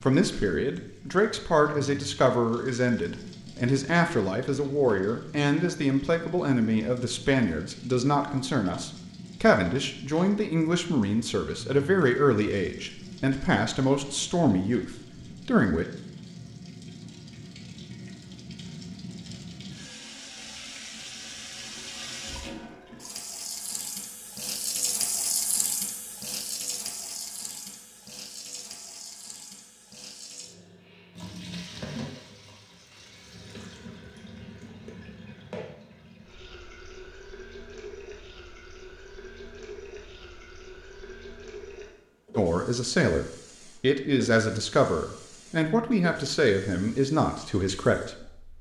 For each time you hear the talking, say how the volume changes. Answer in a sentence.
The talking can be heard from 0.0 to 15.8 s, at a steady volume; and from 42.4 to 48.5 s, at a steady volume.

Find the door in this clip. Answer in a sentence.
The door can't be heard in this clip.